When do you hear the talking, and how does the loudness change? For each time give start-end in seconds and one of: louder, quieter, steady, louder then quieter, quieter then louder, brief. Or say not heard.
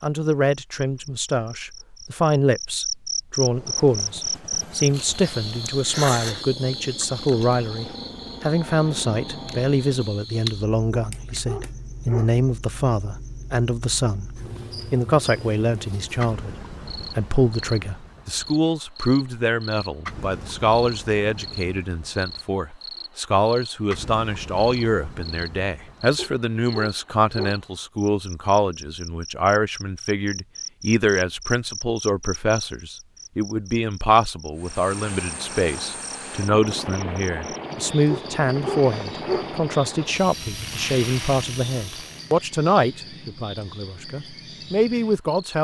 0.0-45.5 steady.